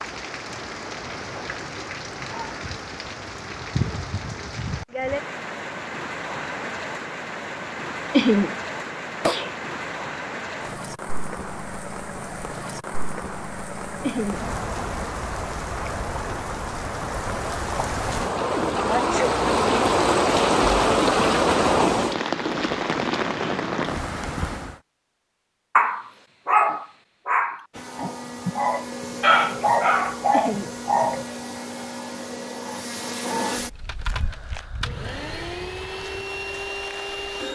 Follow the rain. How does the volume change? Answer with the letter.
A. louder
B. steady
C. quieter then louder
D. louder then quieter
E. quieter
A.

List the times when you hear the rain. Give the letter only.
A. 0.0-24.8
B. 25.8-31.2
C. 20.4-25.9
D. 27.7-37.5
A.